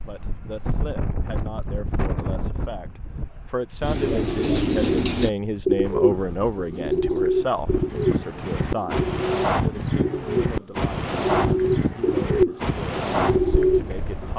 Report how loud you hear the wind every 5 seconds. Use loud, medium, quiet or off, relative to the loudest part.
medium, loud, loud.